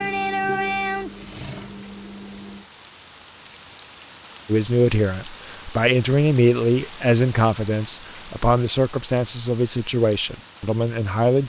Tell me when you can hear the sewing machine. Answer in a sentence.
The sewing machine can be heard from 0.0 to 2.6 s.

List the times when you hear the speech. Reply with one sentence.
You can hear the speech from 4.5 to 11.4 s.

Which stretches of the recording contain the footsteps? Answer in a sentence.
You can't hear the footsteps here.